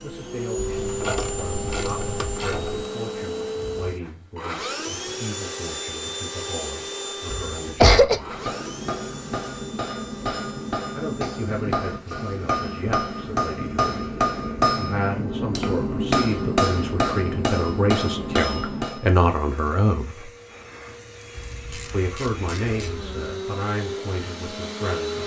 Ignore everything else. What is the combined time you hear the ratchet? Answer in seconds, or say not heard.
4 s.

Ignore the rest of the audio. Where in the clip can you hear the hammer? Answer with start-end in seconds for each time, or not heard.
8.0-19.1.